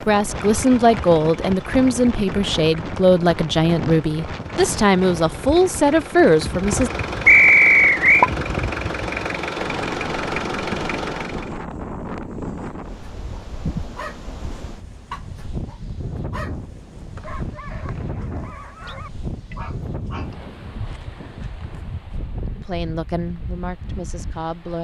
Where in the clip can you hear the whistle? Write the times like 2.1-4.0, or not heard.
7.2-8.2, 17.1-18.9.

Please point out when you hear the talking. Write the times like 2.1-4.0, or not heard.
0.1-6.9, 22.6-24.7.